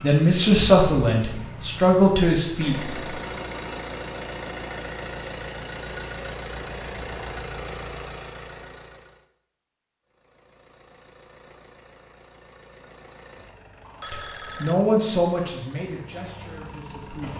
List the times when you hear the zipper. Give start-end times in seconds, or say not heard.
not heard.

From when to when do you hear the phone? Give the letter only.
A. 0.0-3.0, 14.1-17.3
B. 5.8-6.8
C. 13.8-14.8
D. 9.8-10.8
C.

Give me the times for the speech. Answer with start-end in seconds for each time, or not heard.
0.0-3.0, 14.1-17.3.